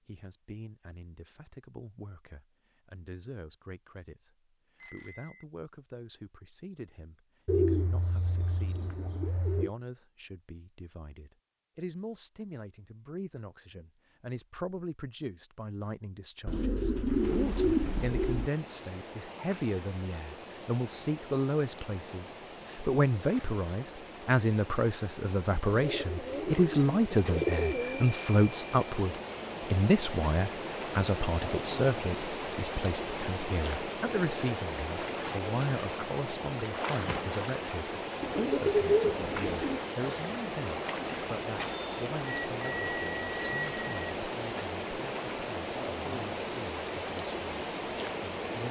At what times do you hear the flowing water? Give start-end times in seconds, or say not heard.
17.1-48.6.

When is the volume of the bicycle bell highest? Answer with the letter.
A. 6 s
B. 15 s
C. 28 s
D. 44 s
D.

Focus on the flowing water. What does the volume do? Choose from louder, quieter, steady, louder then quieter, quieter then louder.
louder.